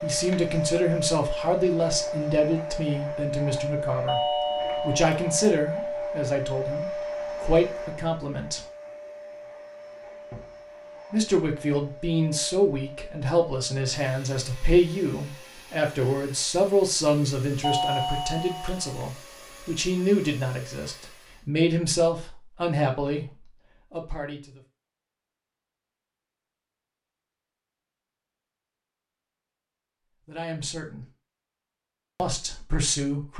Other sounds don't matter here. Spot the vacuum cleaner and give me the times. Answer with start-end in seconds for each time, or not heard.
0.0-21.5.